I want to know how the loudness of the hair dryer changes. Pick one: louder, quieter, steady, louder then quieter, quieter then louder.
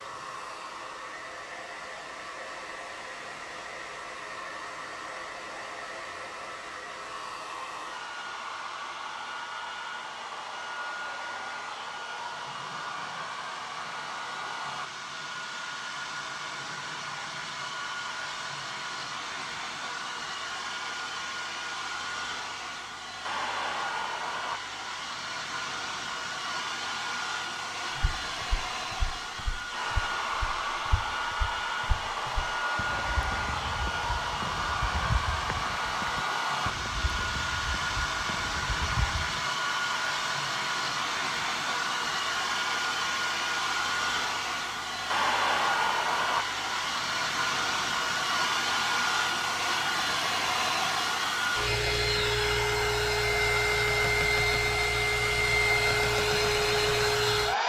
louder.